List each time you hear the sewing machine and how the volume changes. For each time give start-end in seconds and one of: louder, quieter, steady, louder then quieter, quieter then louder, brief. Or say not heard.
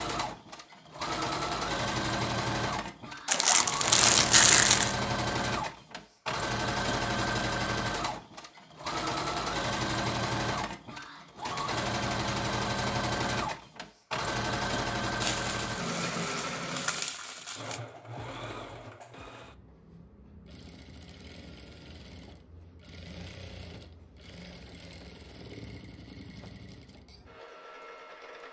0.0-28.4 quieter.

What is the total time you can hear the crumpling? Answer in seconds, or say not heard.
4 s.